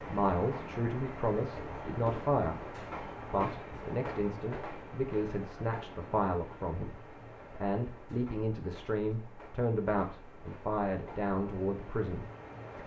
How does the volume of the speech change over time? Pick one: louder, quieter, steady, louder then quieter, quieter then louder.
steady.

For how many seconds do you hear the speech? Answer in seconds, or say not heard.
13 s.